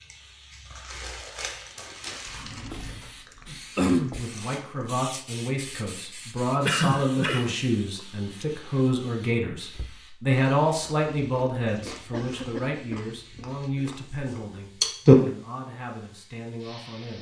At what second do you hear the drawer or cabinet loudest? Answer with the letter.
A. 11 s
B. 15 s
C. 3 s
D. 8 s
C.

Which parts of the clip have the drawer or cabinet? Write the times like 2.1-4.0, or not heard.
2.2-3.2, 9.7-10.1.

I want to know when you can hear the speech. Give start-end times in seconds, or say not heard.
4.0-17.1.